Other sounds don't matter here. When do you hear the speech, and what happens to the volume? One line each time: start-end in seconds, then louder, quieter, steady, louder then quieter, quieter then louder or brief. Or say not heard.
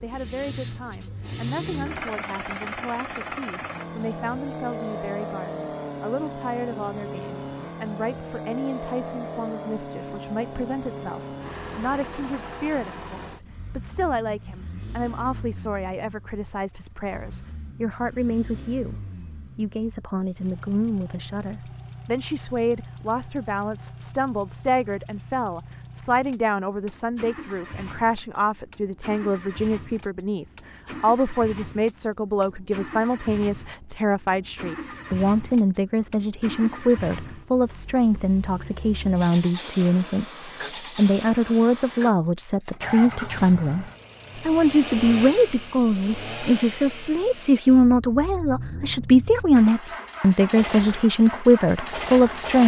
0.0-52.6 louder.